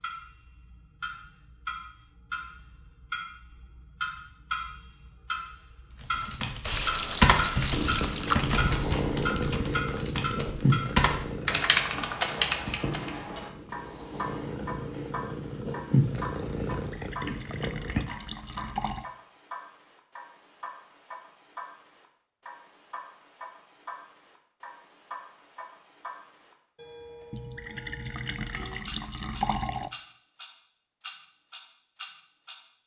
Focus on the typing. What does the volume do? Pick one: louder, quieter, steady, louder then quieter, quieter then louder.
quieter then louder.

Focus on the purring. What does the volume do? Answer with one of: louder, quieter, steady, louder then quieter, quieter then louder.
quieter then louder.